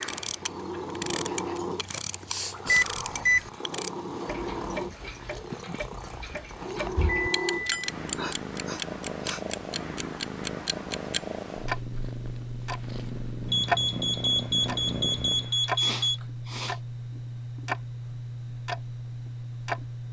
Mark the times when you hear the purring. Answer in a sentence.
You can hear the purring from 0.0 to 15.6 s.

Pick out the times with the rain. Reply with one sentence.
You can't hear the rain here.